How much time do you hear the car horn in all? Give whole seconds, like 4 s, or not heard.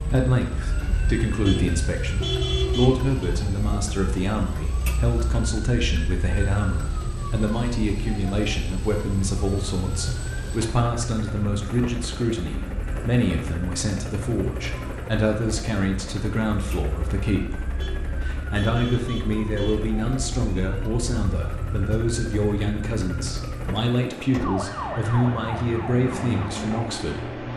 4 s.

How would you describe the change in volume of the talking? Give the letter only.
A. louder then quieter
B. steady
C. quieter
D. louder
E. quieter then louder
B.